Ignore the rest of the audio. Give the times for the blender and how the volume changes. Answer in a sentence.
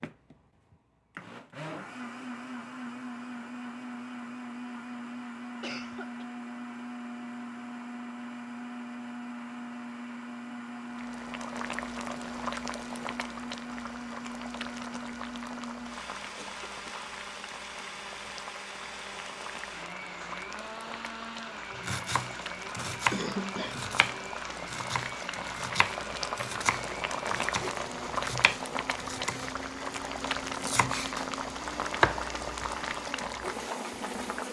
You can hear the blender from 0.0 to 34.4 s, at a steady volume.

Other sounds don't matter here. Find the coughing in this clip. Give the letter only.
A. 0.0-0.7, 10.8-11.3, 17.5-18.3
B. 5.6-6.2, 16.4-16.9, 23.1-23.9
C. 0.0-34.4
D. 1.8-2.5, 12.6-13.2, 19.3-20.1
B.